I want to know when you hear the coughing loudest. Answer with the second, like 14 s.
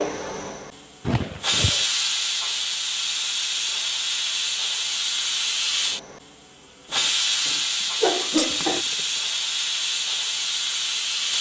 8 s.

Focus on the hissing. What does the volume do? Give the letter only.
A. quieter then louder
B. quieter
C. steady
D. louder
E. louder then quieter
C.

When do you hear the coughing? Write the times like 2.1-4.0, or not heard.
1.1-1.9, 6.9-8.8.